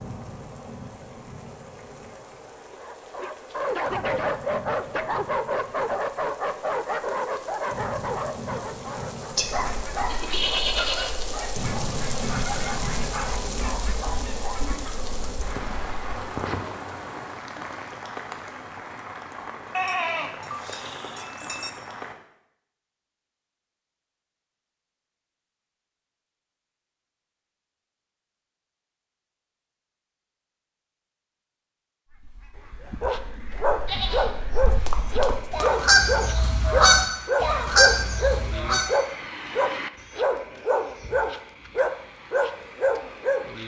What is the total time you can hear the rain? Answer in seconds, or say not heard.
22 s.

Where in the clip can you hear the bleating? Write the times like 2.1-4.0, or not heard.
9.3-11.2, 19.7-21.7, 33.9-35.7.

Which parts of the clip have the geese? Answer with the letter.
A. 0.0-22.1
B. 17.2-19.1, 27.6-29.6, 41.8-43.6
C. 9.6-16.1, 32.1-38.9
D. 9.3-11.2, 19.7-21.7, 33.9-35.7
C.